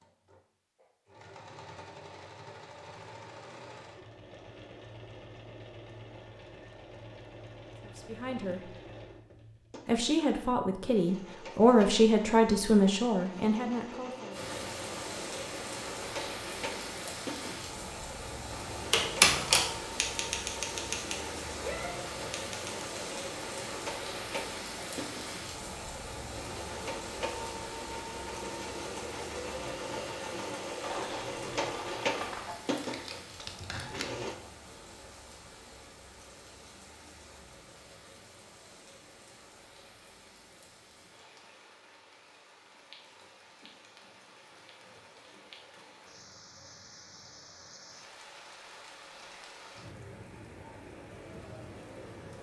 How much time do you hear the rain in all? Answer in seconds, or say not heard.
38 s.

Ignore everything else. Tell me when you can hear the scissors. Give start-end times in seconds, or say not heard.
30.8-32.6.